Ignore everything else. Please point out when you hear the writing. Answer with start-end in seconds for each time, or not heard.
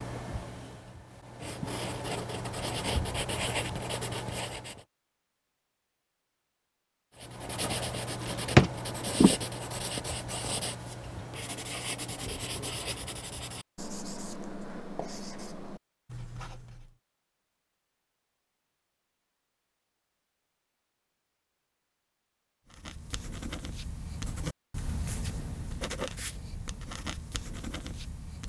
0.0-4.8, 7.2-16.9, 22.6-28.4.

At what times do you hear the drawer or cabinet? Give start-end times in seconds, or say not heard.
8.2-8.7.